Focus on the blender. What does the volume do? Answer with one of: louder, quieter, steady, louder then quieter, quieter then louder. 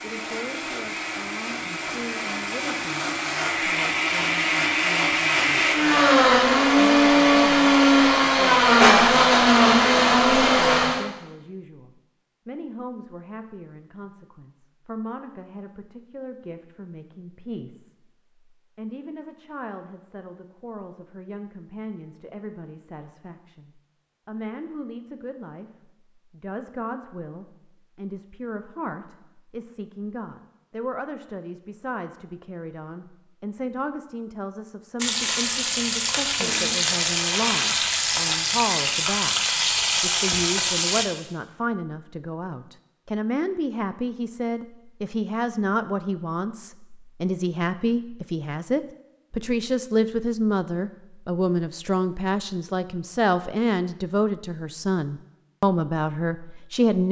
louder.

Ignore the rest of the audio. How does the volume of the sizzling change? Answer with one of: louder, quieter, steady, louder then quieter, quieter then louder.
steady.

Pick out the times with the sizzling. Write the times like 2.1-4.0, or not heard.
35.0-41.0.